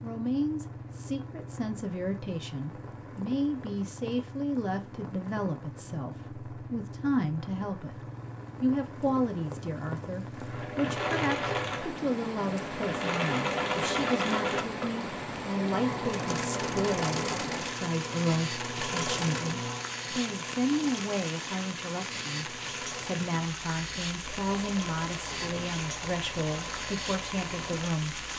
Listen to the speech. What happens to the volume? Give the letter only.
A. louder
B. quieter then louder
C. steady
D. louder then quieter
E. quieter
C.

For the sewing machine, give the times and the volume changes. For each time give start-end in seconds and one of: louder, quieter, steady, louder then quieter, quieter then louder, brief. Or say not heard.
10.3-28.3 quieter.